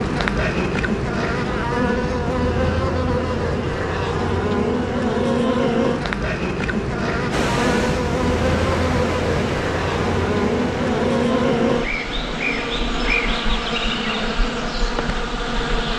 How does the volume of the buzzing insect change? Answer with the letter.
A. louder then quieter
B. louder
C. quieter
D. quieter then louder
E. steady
E.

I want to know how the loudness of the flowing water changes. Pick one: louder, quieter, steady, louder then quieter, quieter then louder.
quieter.